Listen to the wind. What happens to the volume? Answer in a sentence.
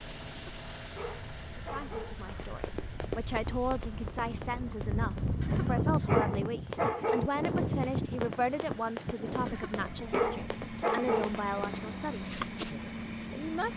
The volume of the wind goes up, then down.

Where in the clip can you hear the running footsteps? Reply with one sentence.
The running footsteps can be heard from 2.4 to 12.8 s.